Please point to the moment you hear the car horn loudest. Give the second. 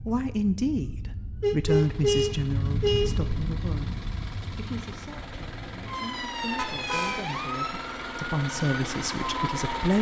2 s.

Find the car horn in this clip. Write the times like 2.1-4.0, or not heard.
1.4-3.1, 6.5-7.2.